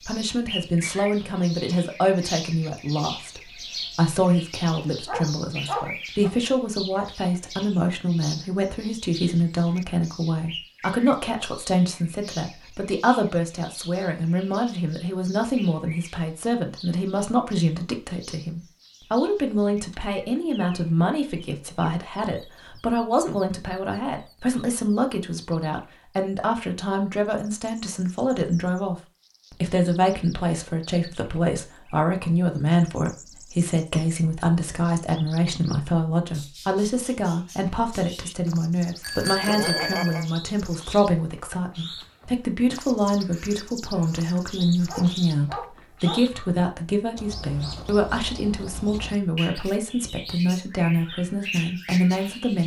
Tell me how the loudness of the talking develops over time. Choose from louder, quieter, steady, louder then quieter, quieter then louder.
steady.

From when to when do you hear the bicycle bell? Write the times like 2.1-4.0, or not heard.
39.0-40.2.